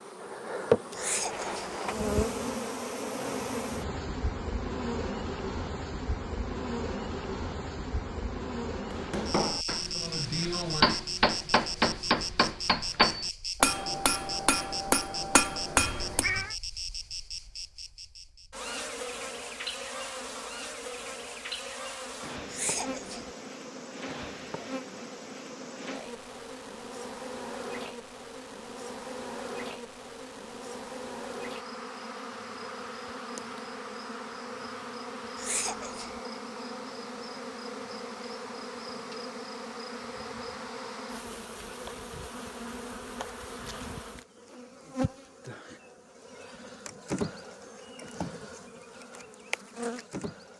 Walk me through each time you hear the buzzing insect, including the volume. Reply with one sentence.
The buzzing insect can be heard from 0.0 to 50.5 s, getting quieter.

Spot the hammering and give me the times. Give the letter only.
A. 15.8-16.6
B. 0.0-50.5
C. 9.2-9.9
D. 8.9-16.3
D.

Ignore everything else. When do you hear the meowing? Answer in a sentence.
You can hear the meowing from 15.8 to 16.6 s.